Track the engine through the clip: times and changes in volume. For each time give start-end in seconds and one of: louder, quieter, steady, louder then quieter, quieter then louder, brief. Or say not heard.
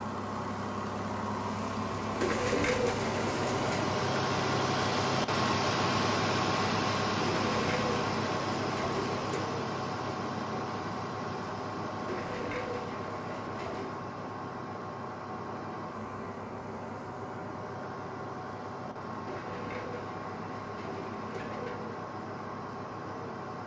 0.0-23.6 quieter.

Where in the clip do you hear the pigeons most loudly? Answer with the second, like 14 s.
3 s.